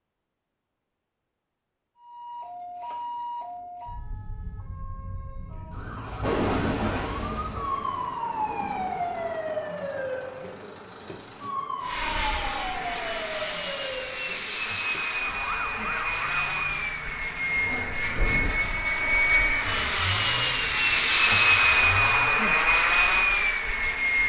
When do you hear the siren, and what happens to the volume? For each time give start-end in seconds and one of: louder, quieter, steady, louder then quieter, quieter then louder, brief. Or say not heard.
2.0-22.6 louder then quieter.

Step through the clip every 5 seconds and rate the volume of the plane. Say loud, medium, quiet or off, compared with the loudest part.
off, off, medium, medium, loud.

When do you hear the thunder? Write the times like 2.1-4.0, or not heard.
6.0-9.5, 17.4-18.6.